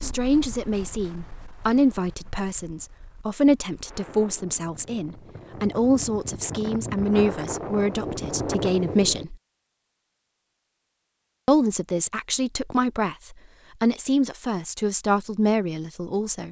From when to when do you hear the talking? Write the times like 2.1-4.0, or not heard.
0.0-9.3, 11.4-16.4.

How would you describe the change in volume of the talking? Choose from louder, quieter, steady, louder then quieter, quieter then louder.
steady.